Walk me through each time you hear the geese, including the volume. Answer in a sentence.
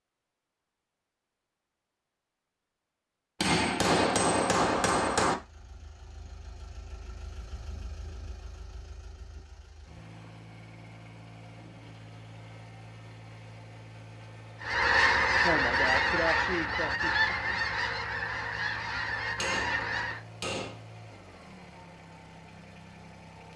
You can hear the geese from 14.6 to 20.2 s, getting quieter.